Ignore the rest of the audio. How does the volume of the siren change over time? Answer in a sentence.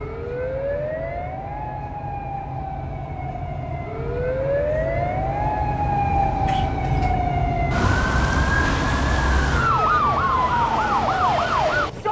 The loudness of the siren goes up.